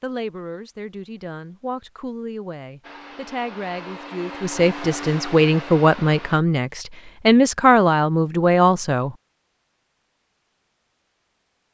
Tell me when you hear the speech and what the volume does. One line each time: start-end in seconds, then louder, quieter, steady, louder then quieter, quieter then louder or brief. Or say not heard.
0.0-9.2 louder.